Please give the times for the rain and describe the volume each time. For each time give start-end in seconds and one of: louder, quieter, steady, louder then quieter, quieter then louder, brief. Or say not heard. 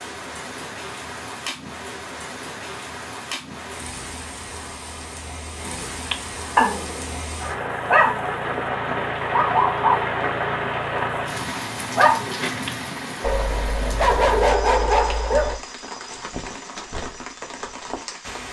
0.0-18.4 louder then quieter.